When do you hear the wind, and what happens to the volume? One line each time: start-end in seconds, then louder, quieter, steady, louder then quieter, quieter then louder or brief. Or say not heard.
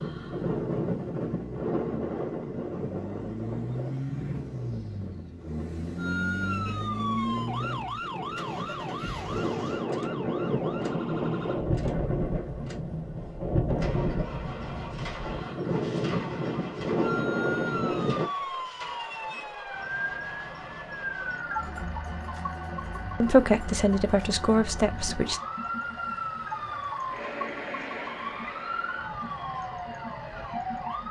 0.0-18.3 quieter then louder.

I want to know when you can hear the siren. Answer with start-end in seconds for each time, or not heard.
6.0-11.6, 17.0-31.0.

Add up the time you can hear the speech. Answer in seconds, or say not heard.
2 s.